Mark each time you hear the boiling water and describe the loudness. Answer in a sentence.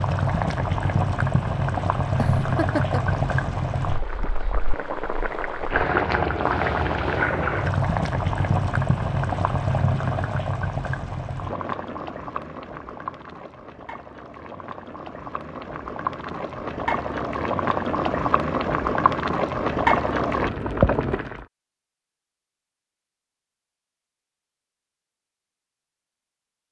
The boiling water can be heard from 0.0 to 21.4 s, getting quieter then louder.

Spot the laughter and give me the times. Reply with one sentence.
You can hear the laughter from 2.1 to 3.2 s.